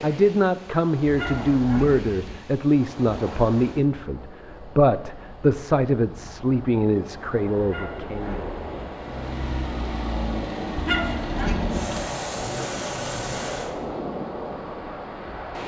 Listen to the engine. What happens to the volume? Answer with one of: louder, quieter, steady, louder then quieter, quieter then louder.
steady.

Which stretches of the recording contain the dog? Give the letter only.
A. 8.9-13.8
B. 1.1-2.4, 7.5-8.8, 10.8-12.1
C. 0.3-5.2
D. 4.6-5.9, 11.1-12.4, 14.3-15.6
B.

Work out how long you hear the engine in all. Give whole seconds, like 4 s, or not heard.
5 s.